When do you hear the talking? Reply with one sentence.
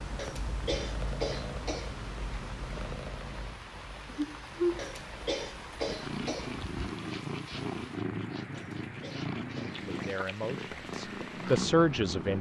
You can hear the talking from 9.8 to 12.3 s.